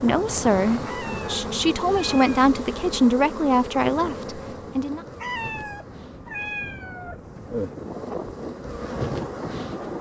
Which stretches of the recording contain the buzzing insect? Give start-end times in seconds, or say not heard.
0.0-9.9.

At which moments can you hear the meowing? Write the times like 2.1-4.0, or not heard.
0.8-2.3, 5.2-7.2.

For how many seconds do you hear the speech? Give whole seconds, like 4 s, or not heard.
5 s.